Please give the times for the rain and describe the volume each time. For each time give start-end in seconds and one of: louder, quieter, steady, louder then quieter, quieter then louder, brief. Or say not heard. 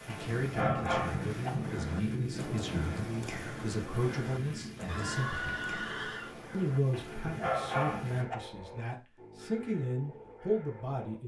0.0-8.2 quieter.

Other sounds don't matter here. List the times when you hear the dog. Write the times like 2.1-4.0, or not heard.
0.1-1.5, 6.9-8.3.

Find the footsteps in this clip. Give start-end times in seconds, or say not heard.
not heard.